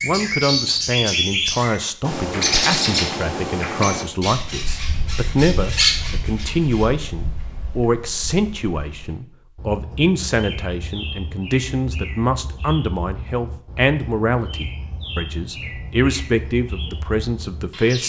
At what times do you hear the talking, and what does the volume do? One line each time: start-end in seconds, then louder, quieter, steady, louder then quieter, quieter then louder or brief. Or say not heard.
0.0-18.0 steady.